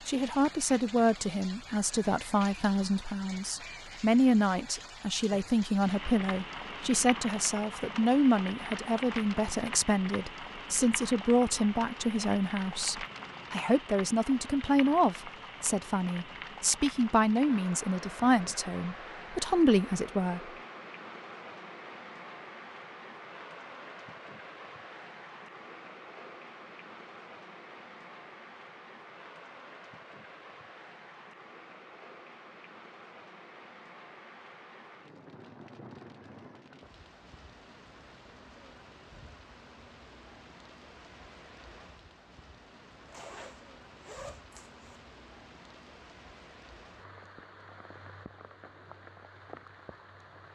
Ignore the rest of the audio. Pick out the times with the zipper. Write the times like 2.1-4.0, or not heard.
43.0-45.0.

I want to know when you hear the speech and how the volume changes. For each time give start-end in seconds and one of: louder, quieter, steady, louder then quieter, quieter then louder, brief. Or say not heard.
0.1-20.4 steady.